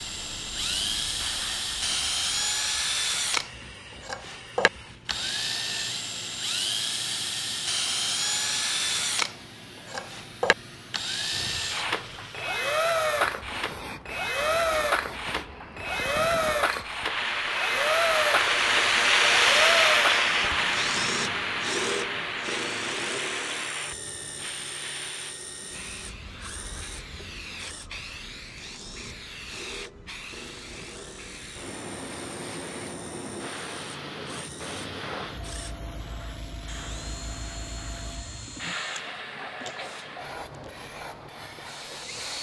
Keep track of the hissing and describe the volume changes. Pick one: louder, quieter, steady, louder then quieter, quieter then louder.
louder then quieter.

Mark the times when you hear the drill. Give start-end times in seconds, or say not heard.
0.0-42.3.